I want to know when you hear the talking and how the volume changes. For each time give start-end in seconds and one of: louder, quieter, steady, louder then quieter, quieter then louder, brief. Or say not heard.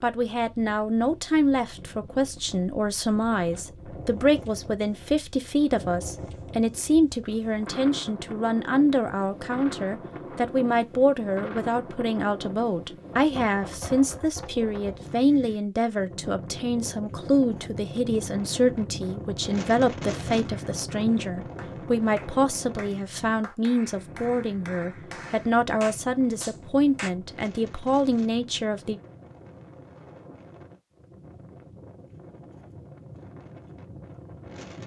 0.0-29.0 steady.